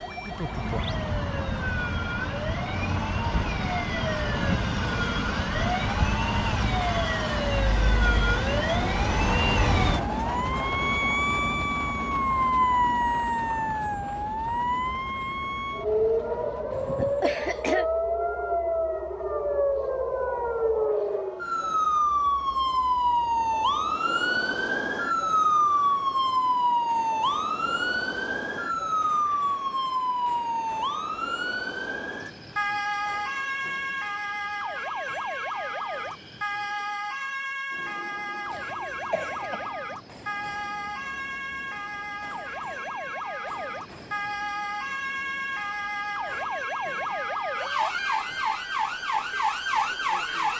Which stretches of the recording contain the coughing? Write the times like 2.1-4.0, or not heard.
16.7-17.9, 38.5-39.8.